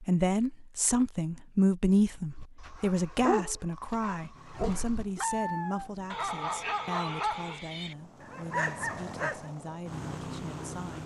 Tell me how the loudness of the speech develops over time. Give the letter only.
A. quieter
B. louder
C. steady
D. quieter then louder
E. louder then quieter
A.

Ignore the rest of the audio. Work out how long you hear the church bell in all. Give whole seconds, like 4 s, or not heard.
not heard.